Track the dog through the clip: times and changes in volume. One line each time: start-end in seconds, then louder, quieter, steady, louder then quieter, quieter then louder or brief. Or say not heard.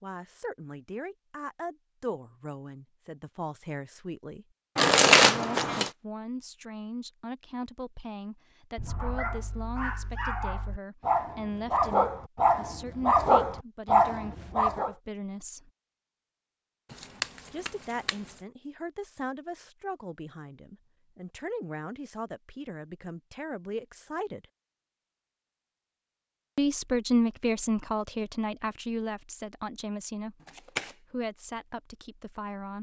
8.8-14.9 louder.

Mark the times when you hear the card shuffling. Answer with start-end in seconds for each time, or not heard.
4.8-5.9, 16.9-18.1, 30.4-30.9.